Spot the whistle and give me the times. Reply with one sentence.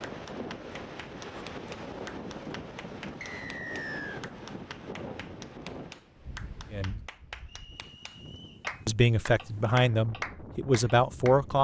You can hear the whistle from 3.2 to 4.2 s and from 7.5 to 8.7 s.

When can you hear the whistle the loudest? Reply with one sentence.
The loudest moment of the whistle is at 4 seconds.